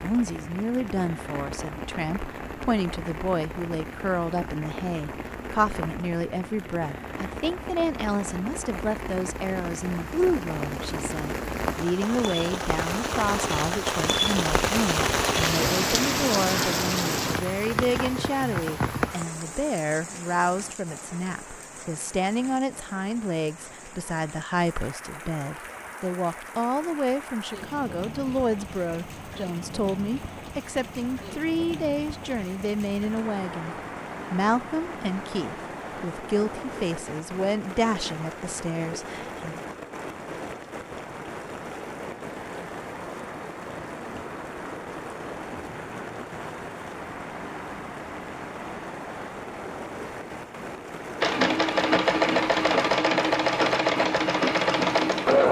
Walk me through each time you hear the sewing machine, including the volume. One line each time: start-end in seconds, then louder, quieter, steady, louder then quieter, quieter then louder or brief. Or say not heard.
51.2-55.4 steady.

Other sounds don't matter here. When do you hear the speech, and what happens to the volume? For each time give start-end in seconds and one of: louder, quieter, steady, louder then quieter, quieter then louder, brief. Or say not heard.
0.0-39.6 steady.